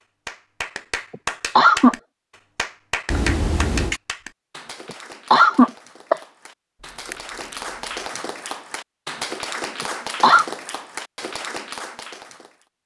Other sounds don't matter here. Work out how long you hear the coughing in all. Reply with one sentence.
The coughing can be heard for 3 seconds in total.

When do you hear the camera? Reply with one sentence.
You can hear the camera from 3.0 to 4.0 s and from 6.8 to 7.6 s.